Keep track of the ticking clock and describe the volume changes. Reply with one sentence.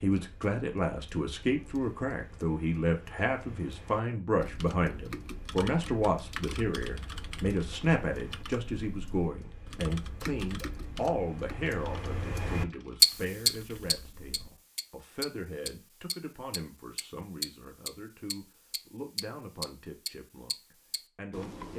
The volume of the ticking clock goes up, then down.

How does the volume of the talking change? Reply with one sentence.
The loudness of the talking goes down.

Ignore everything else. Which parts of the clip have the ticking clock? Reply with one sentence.
The ticking clock can be heard from 0.1 to 21.7 s.